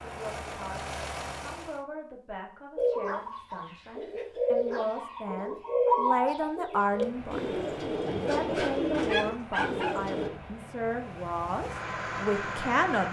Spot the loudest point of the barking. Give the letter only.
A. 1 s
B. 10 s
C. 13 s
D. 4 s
B.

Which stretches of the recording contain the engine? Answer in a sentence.
You can hear the engine from 0.0 to 1.9 s and from 6.8 to 13.0 s.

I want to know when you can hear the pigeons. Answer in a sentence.
You can hear the pigeons from 2.8 to 10.3 s.